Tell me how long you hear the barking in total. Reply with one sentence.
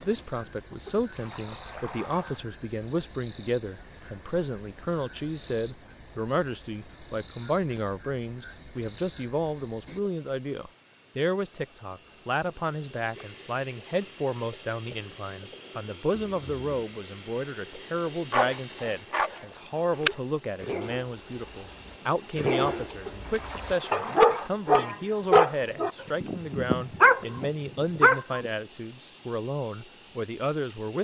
You can hear the barking for 10 seconds altogether.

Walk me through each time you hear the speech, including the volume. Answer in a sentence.
The speech can be heard from 0.0 to 30.9 s, at a steady volume.